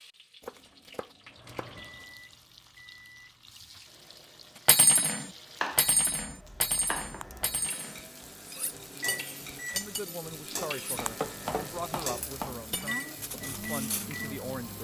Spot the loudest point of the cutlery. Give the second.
5 s.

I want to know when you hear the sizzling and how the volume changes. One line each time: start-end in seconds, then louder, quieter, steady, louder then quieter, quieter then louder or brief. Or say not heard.
0.0-14.7 louder.